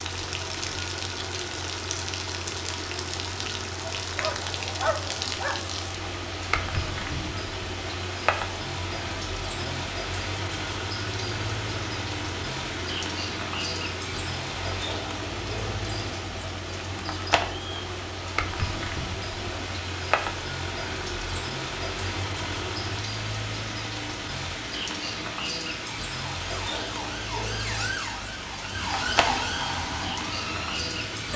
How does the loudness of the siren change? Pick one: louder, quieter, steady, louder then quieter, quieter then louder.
louder then quieter.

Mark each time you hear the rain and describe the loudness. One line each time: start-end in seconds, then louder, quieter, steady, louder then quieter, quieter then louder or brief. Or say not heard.
0.0-31.3 steady.